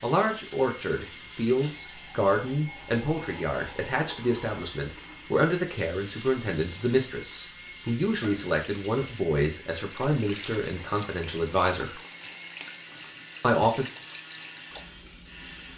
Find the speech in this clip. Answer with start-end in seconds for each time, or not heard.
0.0-12.0, 13.4-13.9.